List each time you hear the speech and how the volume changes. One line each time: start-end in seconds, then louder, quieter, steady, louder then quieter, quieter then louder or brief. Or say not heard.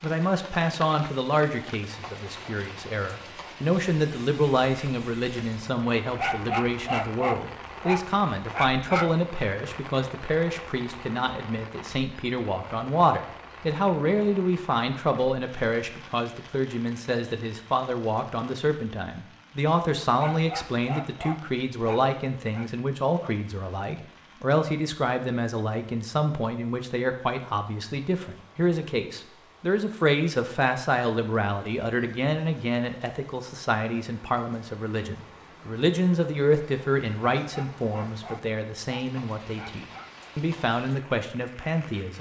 0.0-42.1 steady.